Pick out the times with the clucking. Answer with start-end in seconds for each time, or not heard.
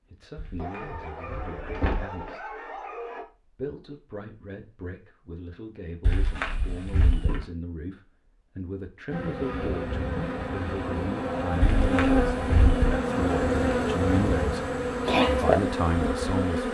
not heard.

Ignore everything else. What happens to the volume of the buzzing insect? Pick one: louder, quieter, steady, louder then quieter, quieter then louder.
louder.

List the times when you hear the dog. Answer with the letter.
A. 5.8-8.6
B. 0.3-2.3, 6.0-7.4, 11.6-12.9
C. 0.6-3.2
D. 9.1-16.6
C.